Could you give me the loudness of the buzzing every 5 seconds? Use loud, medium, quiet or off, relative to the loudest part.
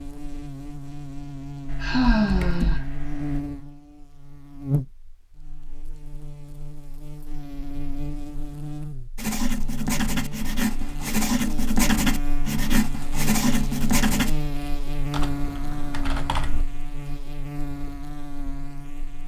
loud, medium, loud, loud.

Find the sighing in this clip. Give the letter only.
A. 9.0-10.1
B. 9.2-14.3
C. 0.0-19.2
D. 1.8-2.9
D.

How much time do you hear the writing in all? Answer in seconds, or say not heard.
5 s.